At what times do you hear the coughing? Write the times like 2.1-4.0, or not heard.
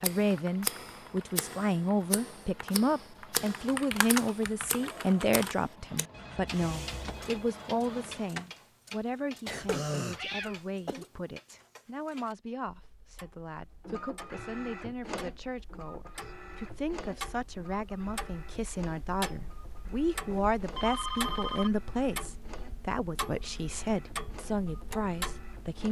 9.4-11.1.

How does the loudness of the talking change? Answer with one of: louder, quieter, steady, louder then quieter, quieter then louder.
quieter then louder.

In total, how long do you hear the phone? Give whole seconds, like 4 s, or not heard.
3 s.